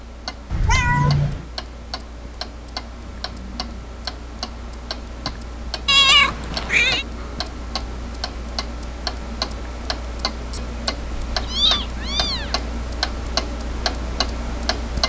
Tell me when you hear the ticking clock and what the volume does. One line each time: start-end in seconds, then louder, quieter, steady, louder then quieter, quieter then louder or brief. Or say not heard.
0.0-15.0 louder.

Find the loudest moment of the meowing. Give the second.
6 s.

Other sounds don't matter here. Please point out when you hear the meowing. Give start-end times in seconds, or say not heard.
0.5-1.4, 5.8-7.0, 11.3-12.6.